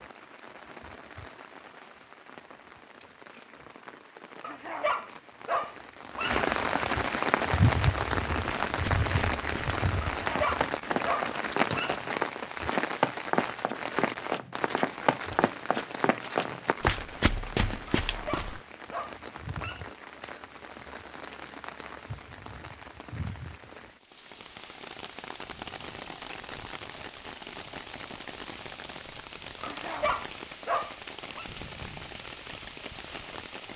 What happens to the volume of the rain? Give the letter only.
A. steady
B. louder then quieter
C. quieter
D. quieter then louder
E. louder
B.